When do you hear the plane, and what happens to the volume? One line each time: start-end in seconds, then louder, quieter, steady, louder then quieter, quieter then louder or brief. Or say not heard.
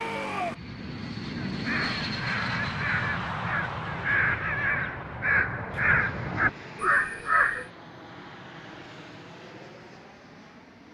0.0-10.8 quieter.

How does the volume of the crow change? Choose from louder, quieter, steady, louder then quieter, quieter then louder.
louder.